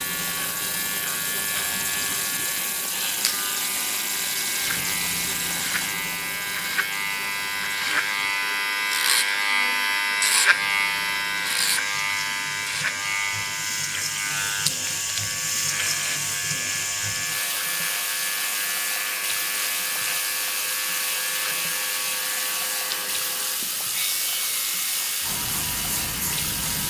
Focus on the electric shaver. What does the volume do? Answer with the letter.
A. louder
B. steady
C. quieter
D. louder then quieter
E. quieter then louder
D.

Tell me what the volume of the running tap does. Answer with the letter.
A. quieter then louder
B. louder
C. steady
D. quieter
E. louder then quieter
A.